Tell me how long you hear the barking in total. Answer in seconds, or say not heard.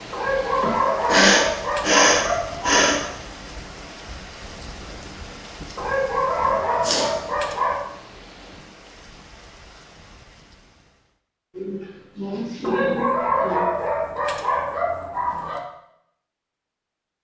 8 s.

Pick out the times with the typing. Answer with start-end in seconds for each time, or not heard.
not heard.